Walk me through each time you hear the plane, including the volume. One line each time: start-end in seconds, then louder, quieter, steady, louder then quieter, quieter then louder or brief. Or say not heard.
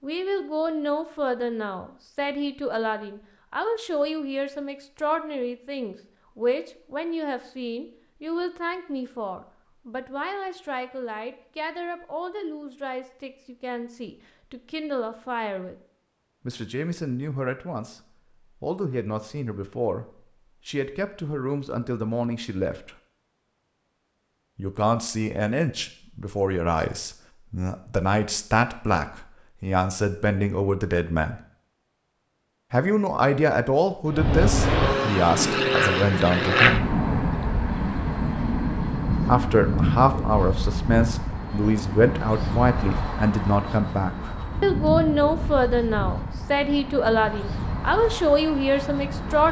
34.0-49.4 quieter.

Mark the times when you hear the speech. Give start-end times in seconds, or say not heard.
0.0-15.8, 16.4-18.0, 18.6-22.9, 24.6-31.4, 32.7-36.9, 39.2-49.4.